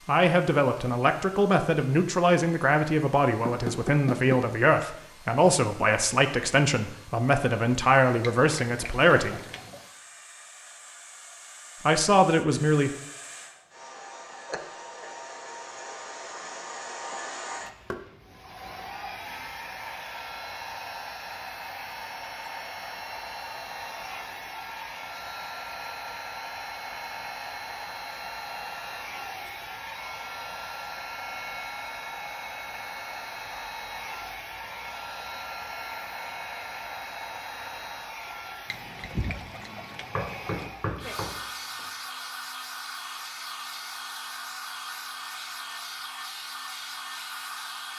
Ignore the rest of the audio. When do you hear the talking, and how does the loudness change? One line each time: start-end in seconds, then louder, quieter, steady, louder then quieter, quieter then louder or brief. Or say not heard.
0.1-9.4 steady
11.8-12.9 brief.